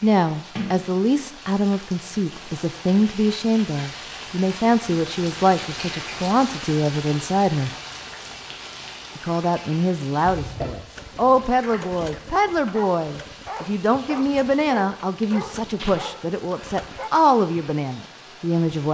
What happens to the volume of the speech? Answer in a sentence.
The loudness of the speech stays about the same.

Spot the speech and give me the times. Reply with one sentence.
The speech can be heard from 0.0 to 7.8 s and from 9.2 to 18.9 s.